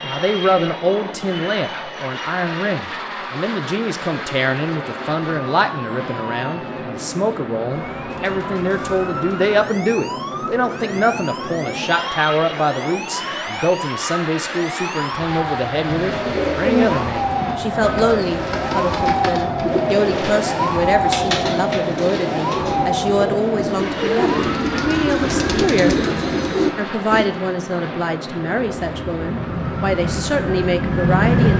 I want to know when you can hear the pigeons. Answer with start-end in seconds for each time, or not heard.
15.8-27.3.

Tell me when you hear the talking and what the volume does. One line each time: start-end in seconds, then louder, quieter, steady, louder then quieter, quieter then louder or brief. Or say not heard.
0.0-31.5 steady.